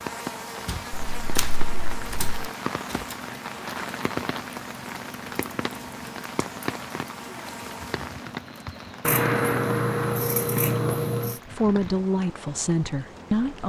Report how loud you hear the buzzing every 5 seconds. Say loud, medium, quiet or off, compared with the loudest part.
loud, loud, off.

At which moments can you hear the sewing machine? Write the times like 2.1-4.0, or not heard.
not heard.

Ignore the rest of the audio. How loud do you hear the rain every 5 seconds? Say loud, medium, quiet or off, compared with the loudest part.
loud, loud, medium.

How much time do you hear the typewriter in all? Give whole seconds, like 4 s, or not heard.
3 s.